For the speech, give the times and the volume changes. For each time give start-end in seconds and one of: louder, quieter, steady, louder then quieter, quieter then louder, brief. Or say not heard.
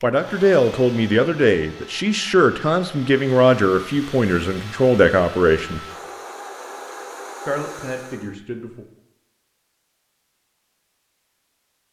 0.0-5.8 steady
7.5-8.8 brief.